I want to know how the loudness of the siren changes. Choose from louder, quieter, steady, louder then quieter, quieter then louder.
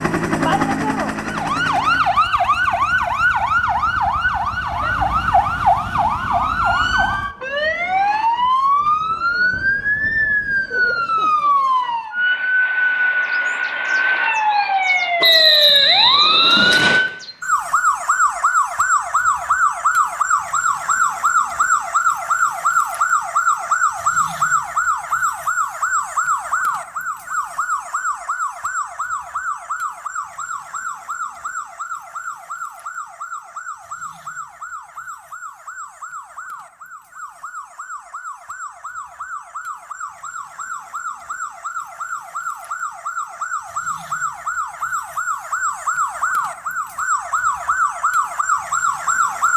quieter then louder.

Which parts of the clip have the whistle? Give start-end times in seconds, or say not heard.
15.2-17.1.